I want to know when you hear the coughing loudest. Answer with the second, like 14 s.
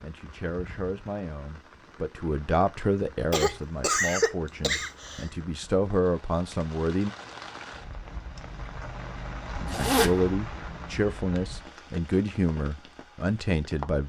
4 s.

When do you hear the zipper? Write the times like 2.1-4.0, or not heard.
9.7-10.2.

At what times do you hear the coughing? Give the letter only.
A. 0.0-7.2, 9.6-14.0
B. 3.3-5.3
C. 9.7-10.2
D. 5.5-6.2
B.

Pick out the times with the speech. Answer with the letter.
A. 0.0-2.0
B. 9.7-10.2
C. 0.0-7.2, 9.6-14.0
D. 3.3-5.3
C.